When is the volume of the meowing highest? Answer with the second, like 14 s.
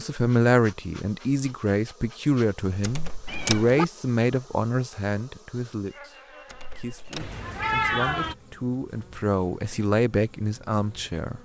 8 s.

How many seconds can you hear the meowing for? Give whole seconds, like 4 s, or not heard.
2 s.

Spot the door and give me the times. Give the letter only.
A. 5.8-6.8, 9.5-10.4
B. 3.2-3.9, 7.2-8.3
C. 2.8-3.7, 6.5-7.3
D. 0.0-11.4
C.